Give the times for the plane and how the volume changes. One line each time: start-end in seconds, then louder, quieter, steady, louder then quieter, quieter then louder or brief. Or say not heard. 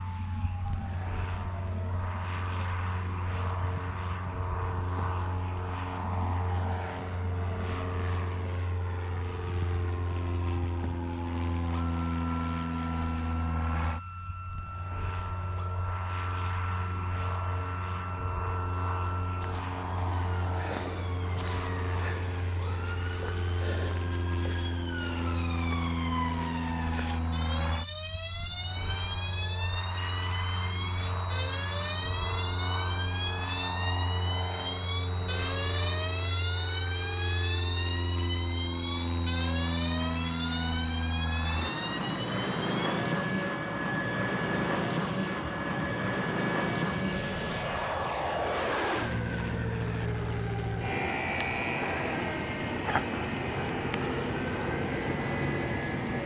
0.0-56.2 louder.